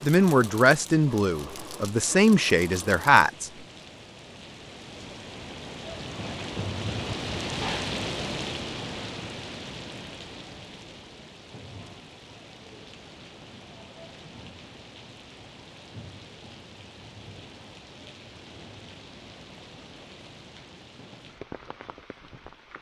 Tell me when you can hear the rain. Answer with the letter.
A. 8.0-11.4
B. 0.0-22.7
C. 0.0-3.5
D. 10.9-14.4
B.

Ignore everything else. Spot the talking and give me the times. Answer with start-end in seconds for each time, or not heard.
0.0-3.5.